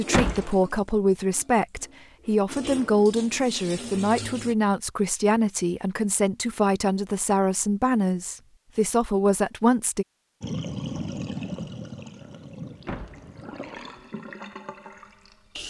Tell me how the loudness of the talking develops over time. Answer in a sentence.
The volume of the talking stays about the same.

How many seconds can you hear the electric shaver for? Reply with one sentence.
You can't hear the electric shaver here.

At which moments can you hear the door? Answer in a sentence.
You can hear the door from 0.1 to 0.6 s and from 12.8 to 13.3 s.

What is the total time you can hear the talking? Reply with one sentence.
You can hear the talking for 10 seconds altogether.